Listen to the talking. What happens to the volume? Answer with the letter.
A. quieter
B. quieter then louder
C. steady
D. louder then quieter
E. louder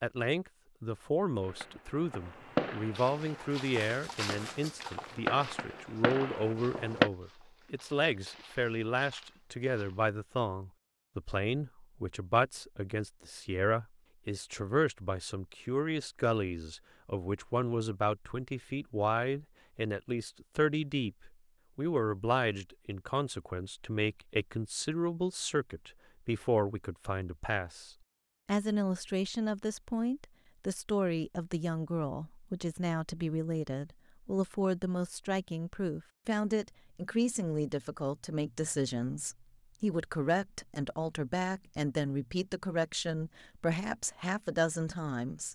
C.